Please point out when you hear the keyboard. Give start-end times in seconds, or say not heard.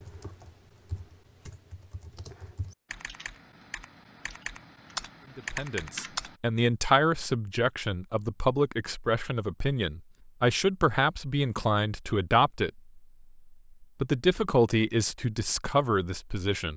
0.0-6.3.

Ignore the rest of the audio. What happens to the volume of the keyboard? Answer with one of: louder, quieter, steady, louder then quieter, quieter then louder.
louder.